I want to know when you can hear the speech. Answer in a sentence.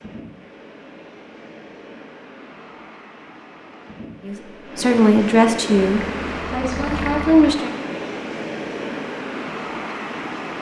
You can hear the speech from 4.2 to 7.7 s.